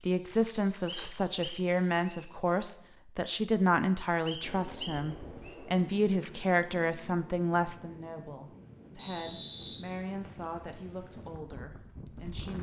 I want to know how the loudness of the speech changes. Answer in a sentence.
The loudness of the speech goes down.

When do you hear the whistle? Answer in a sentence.
The whistle can be heard from 0.8 to 2.2 s, from 4.2 to 5.5 s and from 8.9 to 10.4 s.